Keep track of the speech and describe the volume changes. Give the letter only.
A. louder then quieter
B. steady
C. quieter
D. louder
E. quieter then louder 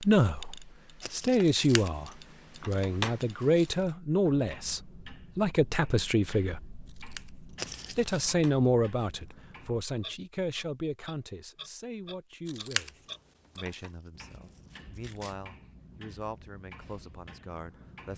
C.